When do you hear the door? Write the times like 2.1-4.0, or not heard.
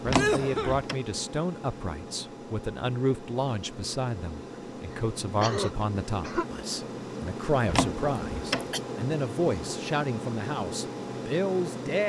0.1-0.9, 7.7-8.7.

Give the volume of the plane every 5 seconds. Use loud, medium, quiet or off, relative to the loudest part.
medium, loud, loud.